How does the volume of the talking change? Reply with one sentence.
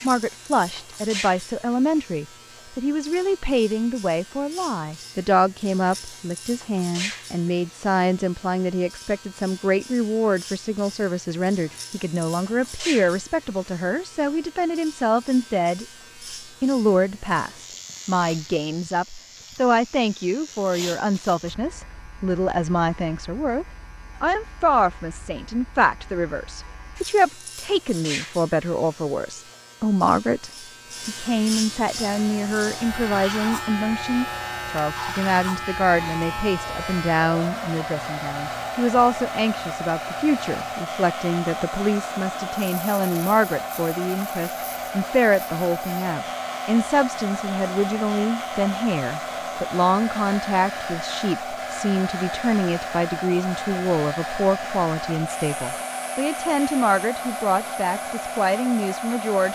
The loudness of the talking stays about the same.